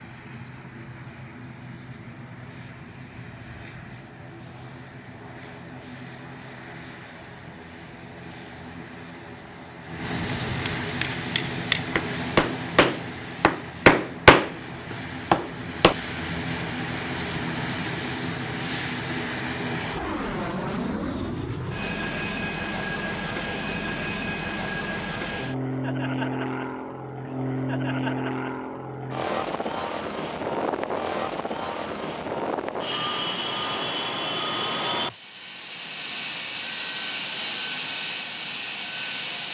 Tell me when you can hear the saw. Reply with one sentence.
You can't hear the saw here.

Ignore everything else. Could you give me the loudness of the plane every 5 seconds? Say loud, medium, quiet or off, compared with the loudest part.
quiet, quiet, loud, loud, loud, loud, loud, loud.